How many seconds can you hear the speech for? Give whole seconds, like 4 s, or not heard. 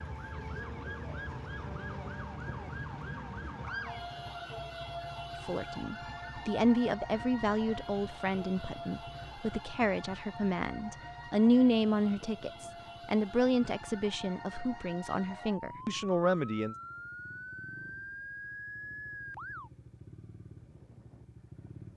11 s.